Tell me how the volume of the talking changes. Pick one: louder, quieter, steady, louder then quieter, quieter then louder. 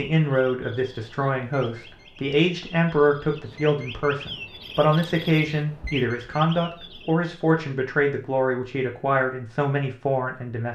steady.